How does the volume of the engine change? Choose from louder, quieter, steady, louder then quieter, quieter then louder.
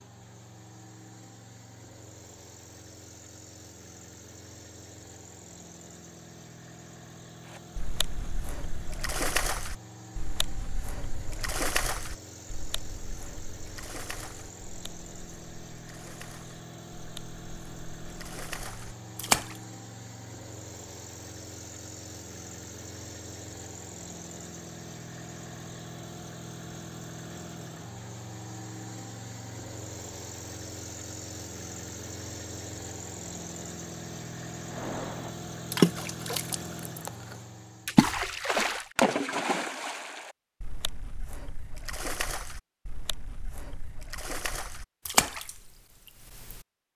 louder.